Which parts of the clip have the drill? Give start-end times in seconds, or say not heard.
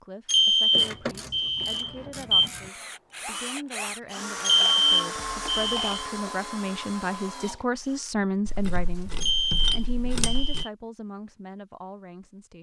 2.2-8.1.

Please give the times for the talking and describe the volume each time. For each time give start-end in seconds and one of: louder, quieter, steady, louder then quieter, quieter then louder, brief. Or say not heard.
0.0-12.5 louder then quieter.